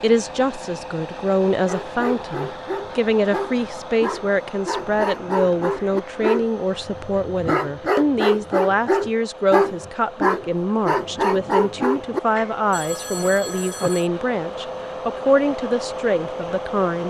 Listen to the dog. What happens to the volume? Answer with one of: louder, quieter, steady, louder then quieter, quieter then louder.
louder.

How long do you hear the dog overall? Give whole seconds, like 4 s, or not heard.
11 s.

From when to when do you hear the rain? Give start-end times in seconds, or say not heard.
not heard.